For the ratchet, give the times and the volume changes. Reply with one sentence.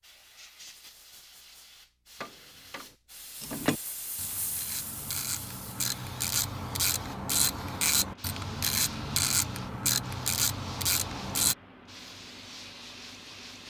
The ratchet can be heard from 3.4 to 11.6 s, getting louder.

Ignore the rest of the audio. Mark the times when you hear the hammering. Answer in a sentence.
The hammering can be heard from 2.2 to 3.0 s.